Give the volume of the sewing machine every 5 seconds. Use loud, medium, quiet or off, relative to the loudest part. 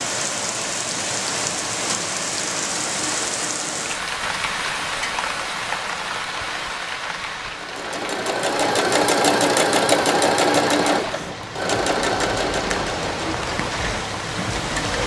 off, loud, loud.